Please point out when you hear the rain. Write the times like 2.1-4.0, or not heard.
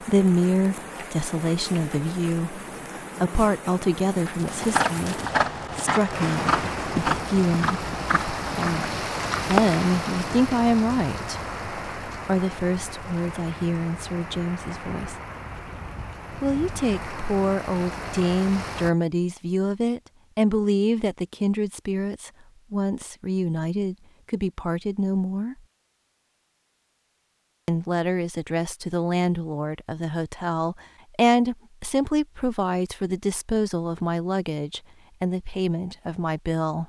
0.0-18.9.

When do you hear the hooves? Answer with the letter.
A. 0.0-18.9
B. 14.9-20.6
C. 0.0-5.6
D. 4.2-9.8
D.